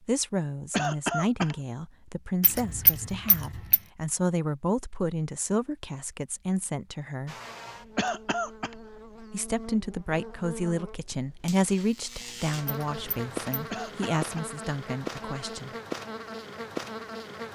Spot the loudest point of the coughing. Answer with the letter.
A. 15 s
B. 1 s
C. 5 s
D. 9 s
B.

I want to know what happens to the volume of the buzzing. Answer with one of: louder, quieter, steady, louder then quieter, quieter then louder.
louder.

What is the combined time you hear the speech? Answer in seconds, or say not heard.
14 s.